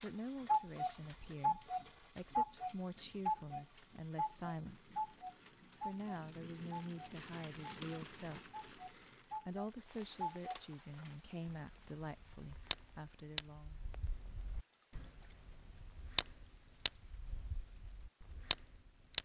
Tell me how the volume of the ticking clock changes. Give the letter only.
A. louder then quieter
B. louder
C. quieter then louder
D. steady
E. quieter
C.